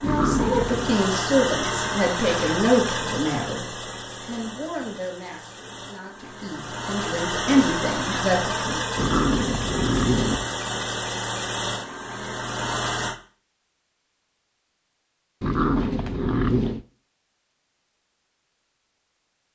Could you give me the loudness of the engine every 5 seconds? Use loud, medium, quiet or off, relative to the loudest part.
loud, loud, loud, off.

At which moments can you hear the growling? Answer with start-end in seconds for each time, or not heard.
0.0-0.9, 8.9-10.5, 15.4-16.9.